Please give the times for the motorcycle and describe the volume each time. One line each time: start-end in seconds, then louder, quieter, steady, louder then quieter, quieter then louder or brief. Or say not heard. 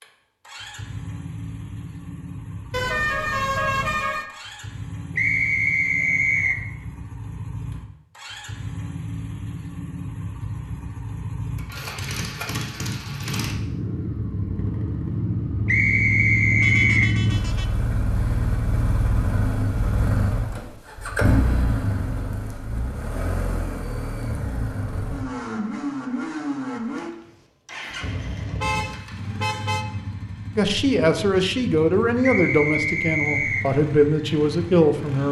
0.0-35.2 louder then quieter.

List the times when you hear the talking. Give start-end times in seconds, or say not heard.
30.6-35.2.